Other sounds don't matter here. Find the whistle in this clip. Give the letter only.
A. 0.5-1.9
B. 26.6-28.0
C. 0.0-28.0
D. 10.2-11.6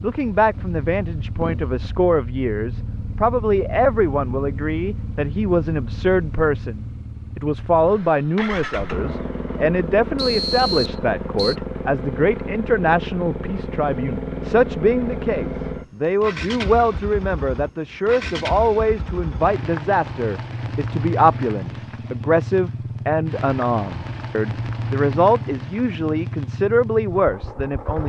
D.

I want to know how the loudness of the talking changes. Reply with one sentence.
The loudness of the talking stays about the same.